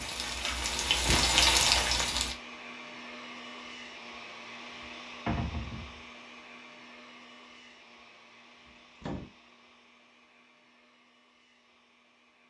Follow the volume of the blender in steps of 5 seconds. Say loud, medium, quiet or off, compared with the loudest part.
loud, medium, quiet.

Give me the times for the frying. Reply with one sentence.
You can hear the frying from 0.0 to 2.4 s.